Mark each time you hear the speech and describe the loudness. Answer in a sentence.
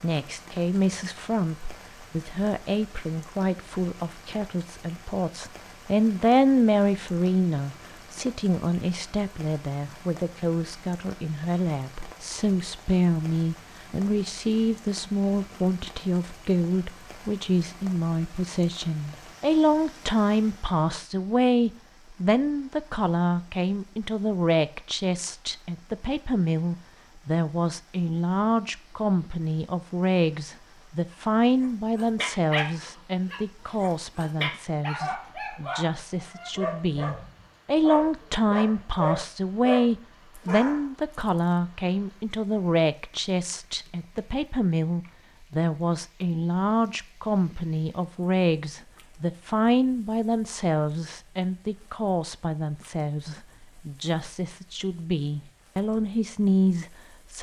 You can hear the speech from 0.0 to 57.3 s, at a steady volume.